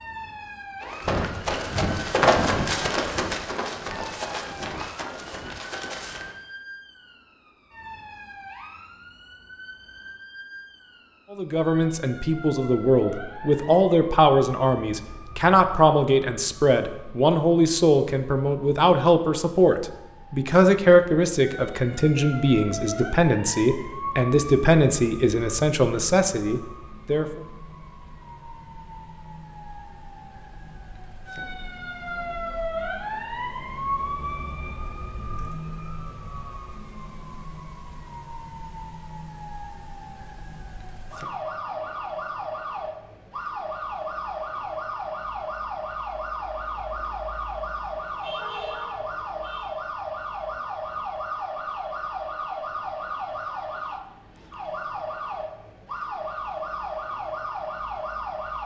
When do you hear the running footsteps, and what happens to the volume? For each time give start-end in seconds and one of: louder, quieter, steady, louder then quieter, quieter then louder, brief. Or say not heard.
0.8-6.3 louder then quieter.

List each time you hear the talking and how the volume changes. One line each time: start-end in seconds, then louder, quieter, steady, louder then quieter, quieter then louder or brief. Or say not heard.
11.3-27.4 steady.